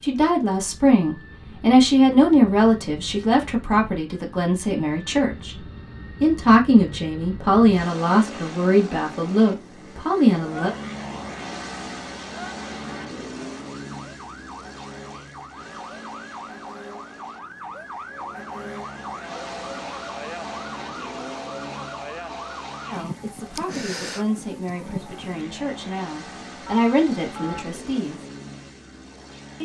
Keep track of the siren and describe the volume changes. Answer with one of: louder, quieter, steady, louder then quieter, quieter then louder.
louder.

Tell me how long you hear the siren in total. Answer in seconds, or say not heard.
15 s.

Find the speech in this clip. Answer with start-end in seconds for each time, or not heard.
0.0-5.5, 6.2-10.8, 22.9-28.2.